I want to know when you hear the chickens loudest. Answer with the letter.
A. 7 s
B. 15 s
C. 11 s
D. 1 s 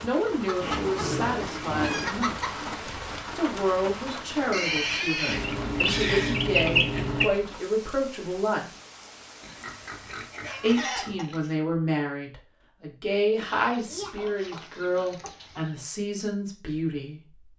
A.